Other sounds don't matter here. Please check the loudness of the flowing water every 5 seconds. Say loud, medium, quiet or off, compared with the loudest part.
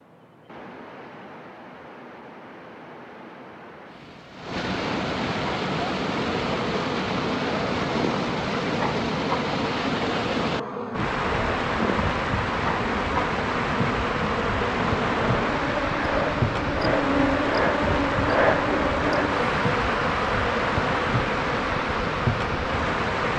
medium, loud, loud, loud, loud.